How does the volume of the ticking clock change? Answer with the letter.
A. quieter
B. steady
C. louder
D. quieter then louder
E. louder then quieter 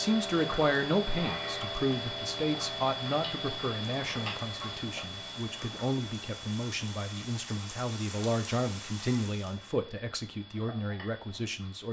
A.